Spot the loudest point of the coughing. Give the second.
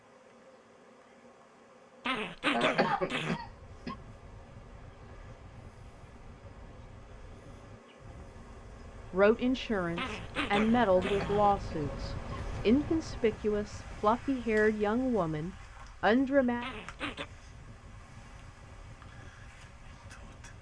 3 s.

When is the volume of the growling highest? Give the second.
3 s.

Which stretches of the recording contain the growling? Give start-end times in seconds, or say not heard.
2.0-3.4, 9.9-11.7, 16.6-17.2.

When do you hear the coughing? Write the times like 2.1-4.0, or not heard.
2.5-4.0, 10.9-12.4.